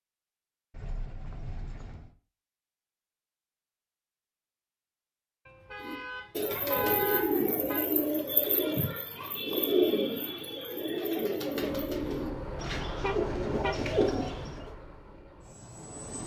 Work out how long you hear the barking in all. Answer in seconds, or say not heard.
not heard.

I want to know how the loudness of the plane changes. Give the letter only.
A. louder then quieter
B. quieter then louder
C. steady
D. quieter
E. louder
D.